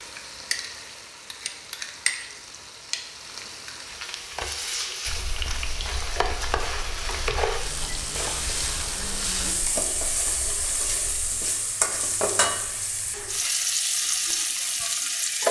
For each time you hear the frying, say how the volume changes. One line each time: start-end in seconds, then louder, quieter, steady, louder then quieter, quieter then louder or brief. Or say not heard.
0.0-15.4 louder.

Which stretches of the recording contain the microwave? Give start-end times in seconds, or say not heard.
not heard.